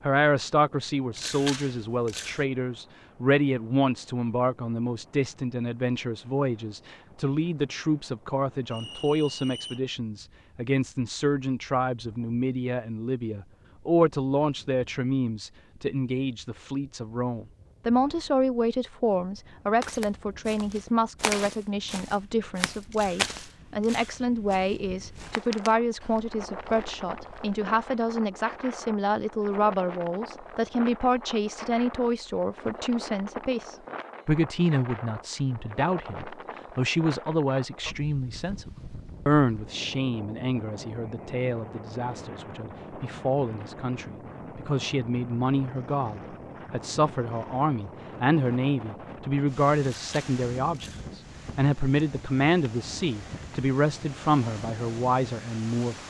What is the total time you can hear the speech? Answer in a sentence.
You can hear the speech for 56 seconds altogether.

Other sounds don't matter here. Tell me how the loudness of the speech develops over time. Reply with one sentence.
The loudness of the speech stays about the same.